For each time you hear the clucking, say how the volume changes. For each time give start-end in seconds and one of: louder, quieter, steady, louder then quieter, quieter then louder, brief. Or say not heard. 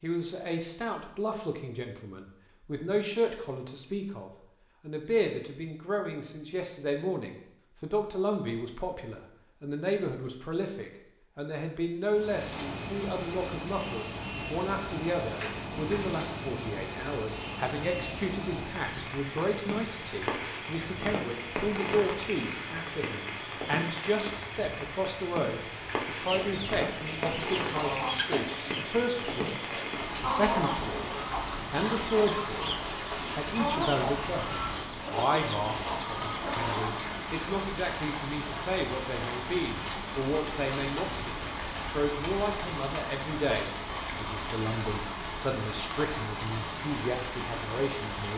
26.1-37.0 steady.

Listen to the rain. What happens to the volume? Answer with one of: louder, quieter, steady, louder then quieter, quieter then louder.
steady.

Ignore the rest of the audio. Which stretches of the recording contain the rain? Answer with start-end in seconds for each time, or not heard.
12.1-48.3.